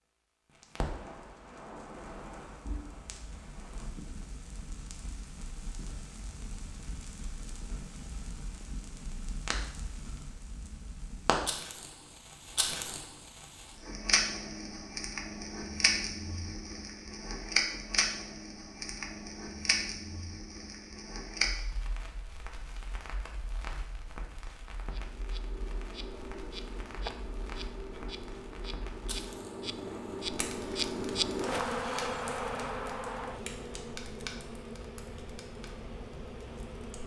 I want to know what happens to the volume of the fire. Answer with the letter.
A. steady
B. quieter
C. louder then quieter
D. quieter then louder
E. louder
C.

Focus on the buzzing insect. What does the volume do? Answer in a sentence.
The volume of the buzzing insect goes up, then down.